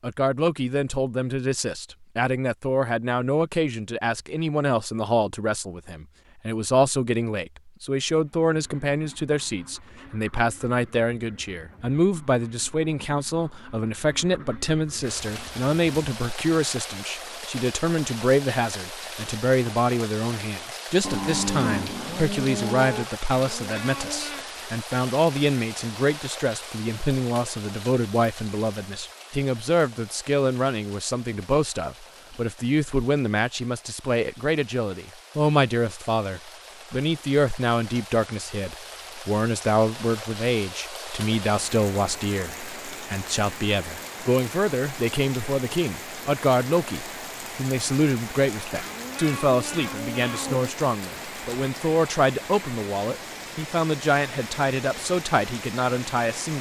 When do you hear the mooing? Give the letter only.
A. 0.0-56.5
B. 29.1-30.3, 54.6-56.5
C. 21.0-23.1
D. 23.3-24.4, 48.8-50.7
C.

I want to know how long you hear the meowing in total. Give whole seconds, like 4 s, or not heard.
3 s.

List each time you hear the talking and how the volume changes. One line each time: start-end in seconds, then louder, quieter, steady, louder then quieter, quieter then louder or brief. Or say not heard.
0.0-56.5 steady.